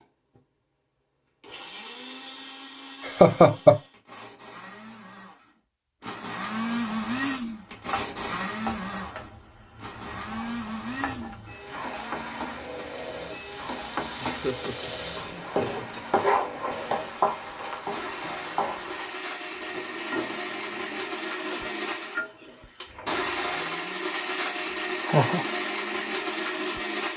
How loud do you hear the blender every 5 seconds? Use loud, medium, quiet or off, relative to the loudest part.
quiet, loud, medium, medium, loud, loud.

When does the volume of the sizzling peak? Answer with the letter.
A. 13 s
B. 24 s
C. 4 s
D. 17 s
D.